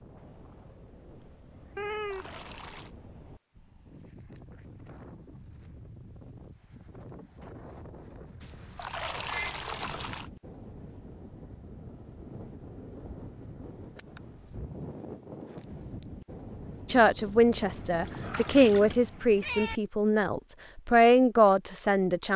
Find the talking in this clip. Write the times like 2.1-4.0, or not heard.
16.9-22.3.